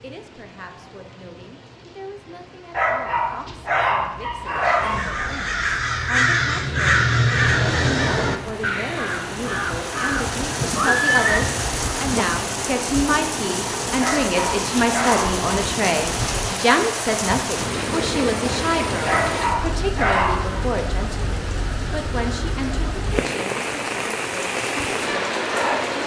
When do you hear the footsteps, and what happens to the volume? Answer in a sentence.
The footsteps can't be heard in this clip.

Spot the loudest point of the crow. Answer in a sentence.
The volume of the crow peaks at 7 seconds.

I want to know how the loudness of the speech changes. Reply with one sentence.
The volume of the speech goes up, then down.